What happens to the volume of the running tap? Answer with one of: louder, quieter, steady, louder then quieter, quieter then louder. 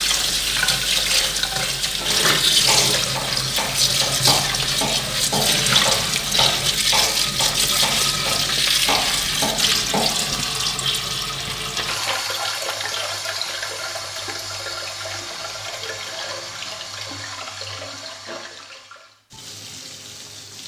quieter.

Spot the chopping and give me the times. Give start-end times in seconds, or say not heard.
2.5-10.3.